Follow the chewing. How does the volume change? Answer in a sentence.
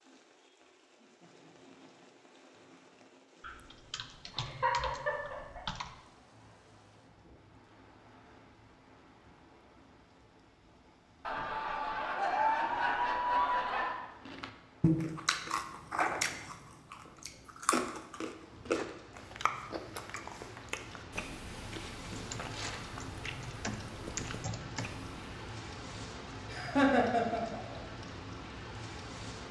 The volume of the chewing goes down.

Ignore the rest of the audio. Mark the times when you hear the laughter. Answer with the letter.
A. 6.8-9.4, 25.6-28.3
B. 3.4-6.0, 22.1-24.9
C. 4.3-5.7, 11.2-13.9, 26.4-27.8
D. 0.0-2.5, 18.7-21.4
C.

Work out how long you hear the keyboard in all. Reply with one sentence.
You can hear the keyboard for 5 seconds altogether.